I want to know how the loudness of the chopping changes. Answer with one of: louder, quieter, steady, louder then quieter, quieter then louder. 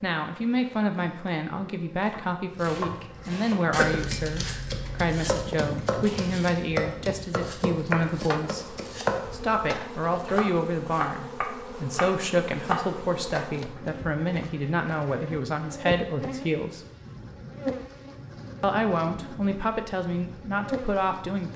steady.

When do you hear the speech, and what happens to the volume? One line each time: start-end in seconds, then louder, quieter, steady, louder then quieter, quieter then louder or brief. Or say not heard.
0.0-16.8 steady
18.6-21.5 brief.